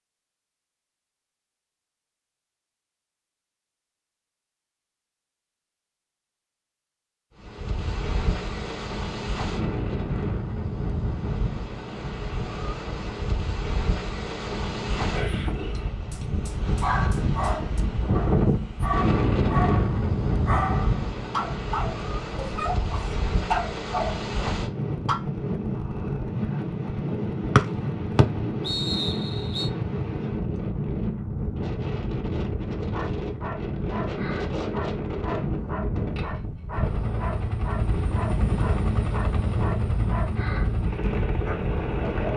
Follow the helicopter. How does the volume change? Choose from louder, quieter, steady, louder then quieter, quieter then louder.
steady.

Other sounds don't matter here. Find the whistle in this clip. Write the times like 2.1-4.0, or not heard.
27.6-29.7.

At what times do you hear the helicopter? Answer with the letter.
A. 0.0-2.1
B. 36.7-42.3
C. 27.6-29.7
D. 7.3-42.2
B.